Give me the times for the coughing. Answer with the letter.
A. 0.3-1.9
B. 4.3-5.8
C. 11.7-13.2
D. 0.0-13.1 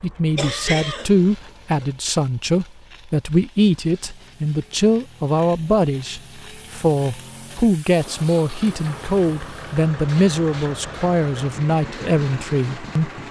A.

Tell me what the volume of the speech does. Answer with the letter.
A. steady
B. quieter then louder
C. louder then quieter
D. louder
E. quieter
A.